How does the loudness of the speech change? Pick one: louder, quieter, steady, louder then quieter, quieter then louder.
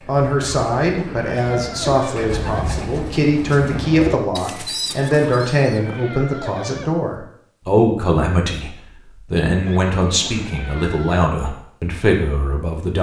steady.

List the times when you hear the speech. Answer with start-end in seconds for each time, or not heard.
0.1-12.9.